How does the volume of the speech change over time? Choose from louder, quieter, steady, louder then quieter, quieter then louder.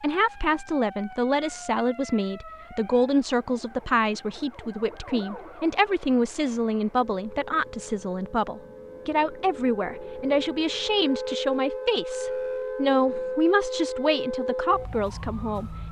steady.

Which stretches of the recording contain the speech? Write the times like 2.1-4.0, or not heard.
0.0-15.8.